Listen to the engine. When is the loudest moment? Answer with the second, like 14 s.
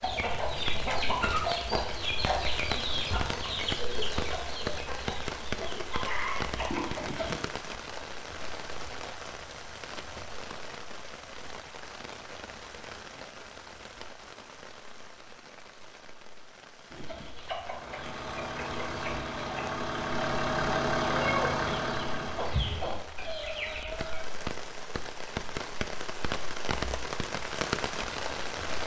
21 s.